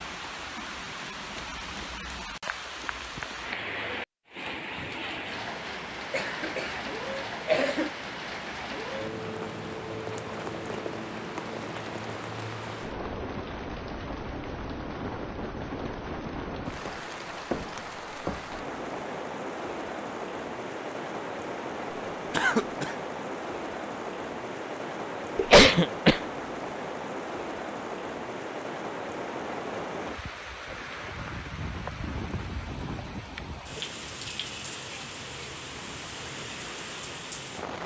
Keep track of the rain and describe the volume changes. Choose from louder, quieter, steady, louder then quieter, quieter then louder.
steady.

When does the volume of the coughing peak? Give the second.
26 s.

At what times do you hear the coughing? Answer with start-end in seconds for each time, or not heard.
6.1-6.8, 7.5-7.9, 22.3-22.9, 25.4-26.2.